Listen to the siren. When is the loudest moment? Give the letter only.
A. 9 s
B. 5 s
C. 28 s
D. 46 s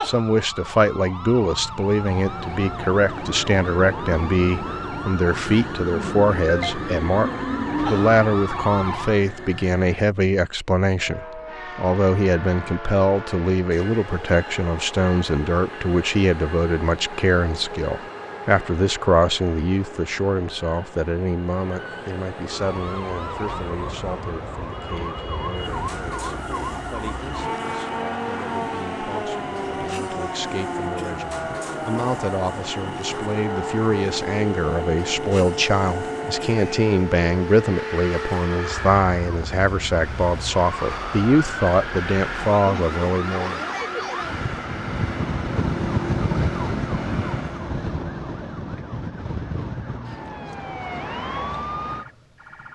D.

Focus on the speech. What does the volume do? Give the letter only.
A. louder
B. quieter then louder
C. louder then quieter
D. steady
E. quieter
B.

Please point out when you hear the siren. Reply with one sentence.
The siren can be heard from 0.0 to 9.2 s and from 22.4 to 52.7 s.